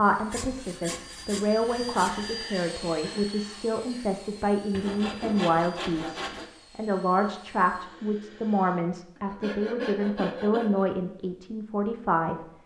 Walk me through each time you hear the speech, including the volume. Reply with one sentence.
The speech can be heard from 0.0 to 12.5 s, at a steady volume.